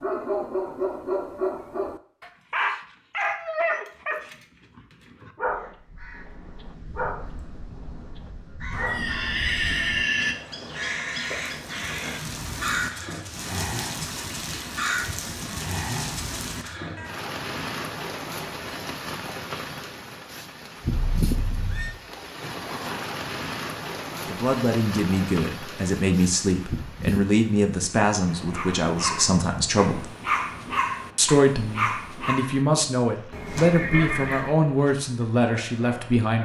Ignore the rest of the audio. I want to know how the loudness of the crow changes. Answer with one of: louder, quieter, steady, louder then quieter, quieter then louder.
louder.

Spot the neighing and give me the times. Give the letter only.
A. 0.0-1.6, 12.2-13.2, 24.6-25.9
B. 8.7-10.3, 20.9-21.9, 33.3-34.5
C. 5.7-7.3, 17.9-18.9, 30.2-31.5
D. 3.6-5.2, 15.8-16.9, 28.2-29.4
B.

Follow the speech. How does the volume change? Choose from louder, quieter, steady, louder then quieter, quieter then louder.
steady.